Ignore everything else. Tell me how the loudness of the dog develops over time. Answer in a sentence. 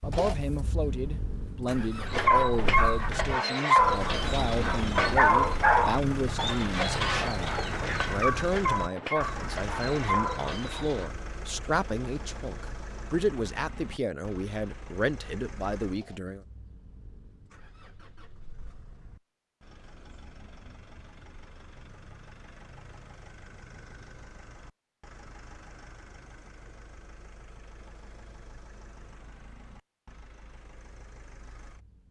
The loudness of the dog goes down.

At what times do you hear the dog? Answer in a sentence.
You can hear the dog from 2.0 to 11.1 s.